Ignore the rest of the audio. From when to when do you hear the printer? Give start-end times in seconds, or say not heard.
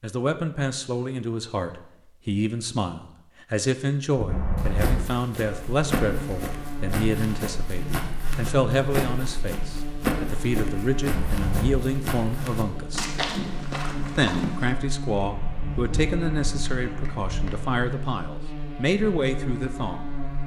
not heard.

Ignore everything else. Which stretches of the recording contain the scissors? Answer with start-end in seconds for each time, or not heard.
4.2-5.0, 11.1-11.8, 15.2-17.7.